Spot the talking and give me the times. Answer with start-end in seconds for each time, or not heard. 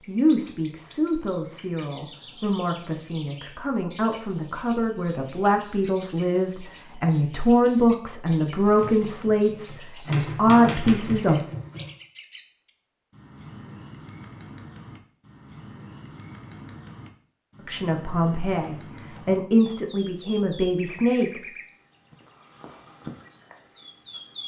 0.1-11.4, 17.6-21.5.